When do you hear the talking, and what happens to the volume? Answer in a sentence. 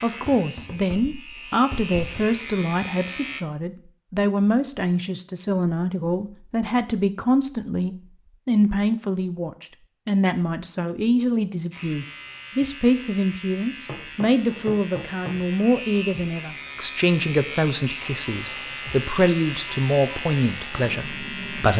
You can hear the talking from 0.0 to 21.7 s, at a steady volume.